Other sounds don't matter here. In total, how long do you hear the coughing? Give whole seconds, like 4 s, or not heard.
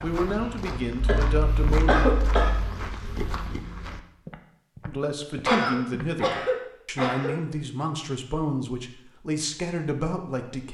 4 s.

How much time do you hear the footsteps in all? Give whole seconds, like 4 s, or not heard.
6 s.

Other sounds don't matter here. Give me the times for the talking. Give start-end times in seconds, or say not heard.
0.0-2.1, 4.8-10.7.